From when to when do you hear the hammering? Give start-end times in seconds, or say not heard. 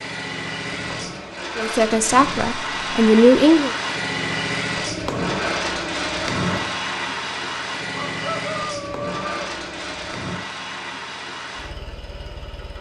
0.8-2.5, 4.8-6.8, 8.7-10.4.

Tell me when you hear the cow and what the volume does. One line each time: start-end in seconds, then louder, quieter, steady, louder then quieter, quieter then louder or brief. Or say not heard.
not heard.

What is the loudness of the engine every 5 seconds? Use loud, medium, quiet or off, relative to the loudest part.
loud, loud, medium.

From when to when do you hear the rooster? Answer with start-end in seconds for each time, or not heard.
7.9-9.4.